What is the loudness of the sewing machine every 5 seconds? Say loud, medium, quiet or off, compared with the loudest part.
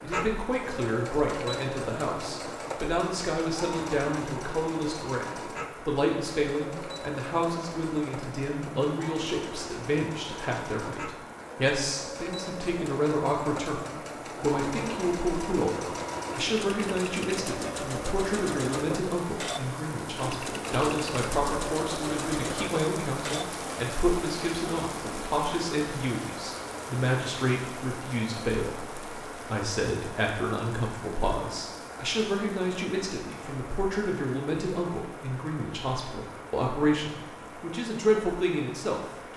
loud, medium, loud, loud, loud, off, off, off.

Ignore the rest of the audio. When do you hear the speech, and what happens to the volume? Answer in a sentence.
The speech can be heard from 0.0 to 39.0 s, at a steady volume.